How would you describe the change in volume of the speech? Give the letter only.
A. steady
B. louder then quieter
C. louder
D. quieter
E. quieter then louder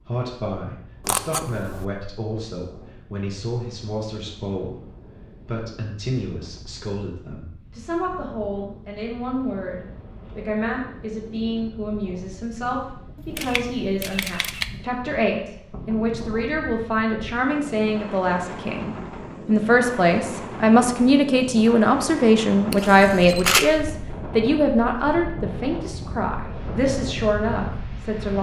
C.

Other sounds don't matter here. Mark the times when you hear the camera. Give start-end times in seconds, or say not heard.
1.1-1.9, 13.3-14.7, 22.7-23.7.